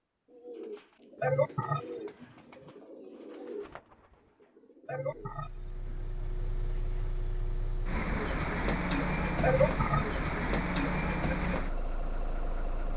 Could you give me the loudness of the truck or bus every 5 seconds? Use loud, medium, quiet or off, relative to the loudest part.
off, loud, loud.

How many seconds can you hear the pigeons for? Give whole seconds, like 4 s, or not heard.
5 s.